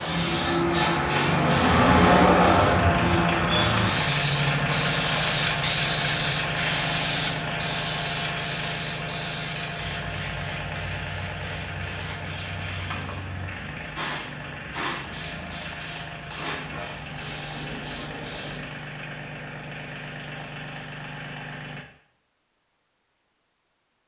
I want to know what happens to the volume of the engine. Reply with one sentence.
The volume of the engine goes down.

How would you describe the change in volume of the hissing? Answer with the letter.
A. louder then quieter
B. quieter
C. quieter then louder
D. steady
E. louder
B.